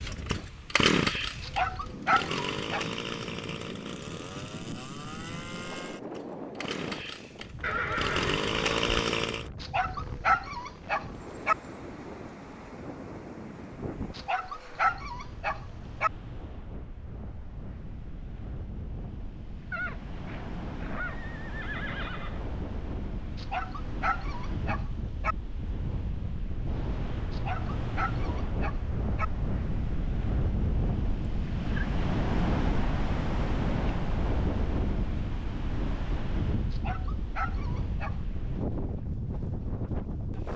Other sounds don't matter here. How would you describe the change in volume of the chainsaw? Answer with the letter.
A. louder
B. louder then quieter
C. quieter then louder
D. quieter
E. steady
C.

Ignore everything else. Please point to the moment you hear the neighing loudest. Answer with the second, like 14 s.
8 s.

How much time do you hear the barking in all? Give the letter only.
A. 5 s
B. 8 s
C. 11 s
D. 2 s
C.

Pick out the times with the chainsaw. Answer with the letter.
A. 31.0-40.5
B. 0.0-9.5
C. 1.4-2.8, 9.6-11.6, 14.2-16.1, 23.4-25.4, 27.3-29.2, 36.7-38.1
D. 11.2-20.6
B.